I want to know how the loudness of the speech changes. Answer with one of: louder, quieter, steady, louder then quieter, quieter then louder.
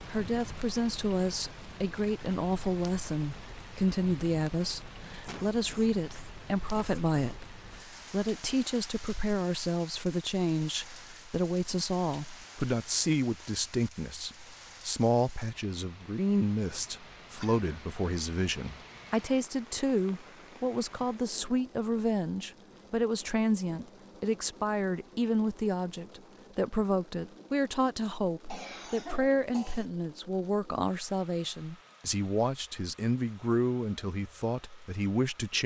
steady.